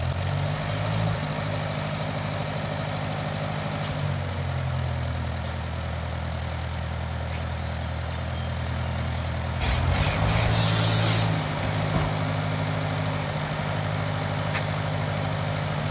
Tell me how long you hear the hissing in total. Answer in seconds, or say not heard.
3 s.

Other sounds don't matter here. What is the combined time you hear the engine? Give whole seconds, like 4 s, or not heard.
16 s.